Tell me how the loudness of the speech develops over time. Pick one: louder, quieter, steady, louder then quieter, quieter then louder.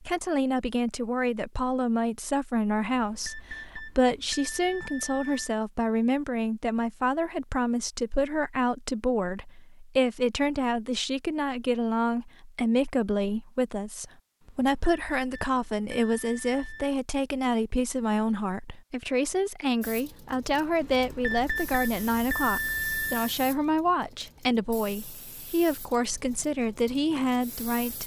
steady.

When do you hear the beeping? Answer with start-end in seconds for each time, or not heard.
2.8-5.5, 14.4-16.9, 20.8-23.3.